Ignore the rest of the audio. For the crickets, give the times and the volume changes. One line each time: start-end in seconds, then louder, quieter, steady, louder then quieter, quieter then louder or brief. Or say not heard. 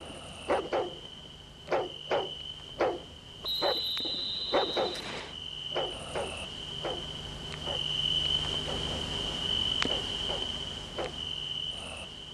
0.0-12.2 louder.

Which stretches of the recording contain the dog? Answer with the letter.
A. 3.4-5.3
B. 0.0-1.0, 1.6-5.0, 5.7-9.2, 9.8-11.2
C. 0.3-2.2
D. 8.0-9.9
B.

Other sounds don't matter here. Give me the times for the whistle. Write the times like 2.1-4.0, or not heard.
3.4-5.3.